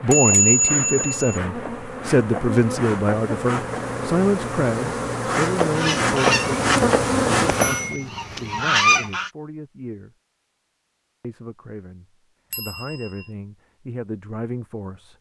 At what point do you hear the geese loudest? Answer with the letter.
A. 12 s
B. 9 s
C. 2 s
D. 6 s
B.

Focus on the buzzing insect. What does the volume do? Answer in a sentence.
The loudness of the buzzing insect goes up.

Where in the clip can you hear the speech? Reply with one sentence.
You can hear the speech from 0.0 to 10.2 s and from 11.2 to 15.1 s.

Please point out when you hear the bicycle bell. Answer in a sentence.
The bicycle bell can be heard from 0.1 to 1.4 s, from 7.6 to 8.1 s and from 12.5 to 13.2 s.